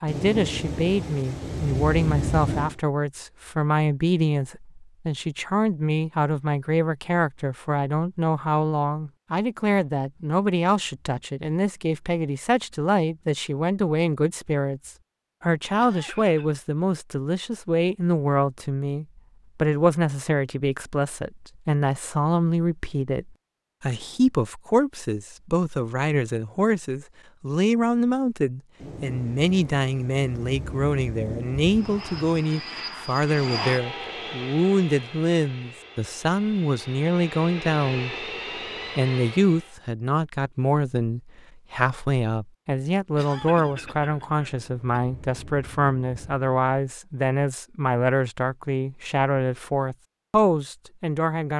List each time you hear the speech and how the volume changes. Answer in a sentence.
You can hear the speech from 0.0 to 38.3 s, at a steady volume; and from 39.0 to 51.5 s, at a steady volume.